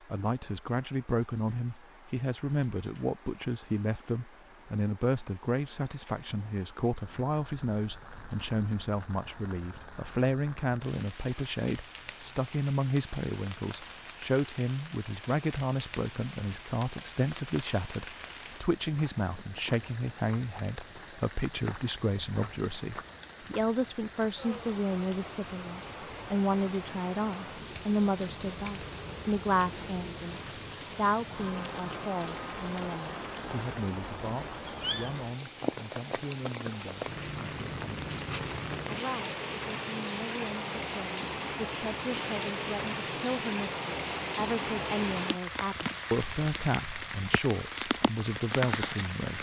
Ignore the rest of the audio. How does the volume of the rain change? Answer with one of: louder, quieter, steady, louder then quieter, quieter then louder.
louder.